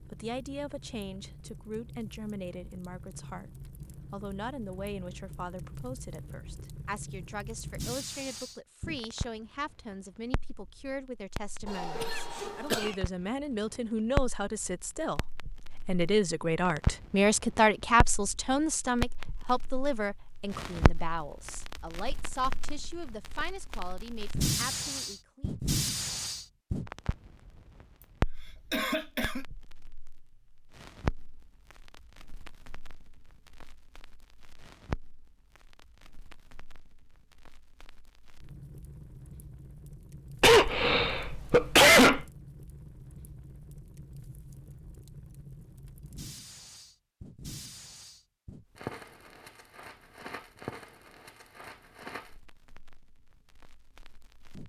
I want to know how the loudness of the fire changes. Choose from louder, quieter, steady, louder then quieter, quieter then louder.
louder then quieter.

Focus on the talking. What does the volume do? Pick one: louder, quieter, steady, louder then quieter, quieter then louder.
louder then quieter.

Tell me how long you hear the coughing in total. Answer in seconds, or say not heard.
4 s.